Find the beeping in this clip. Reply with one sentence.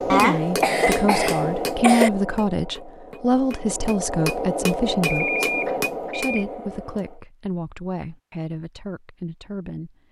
You can hear the beeping from 5.0 to 6.5 s.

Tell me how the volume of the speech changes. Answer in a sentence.
The volume of the speech goes down.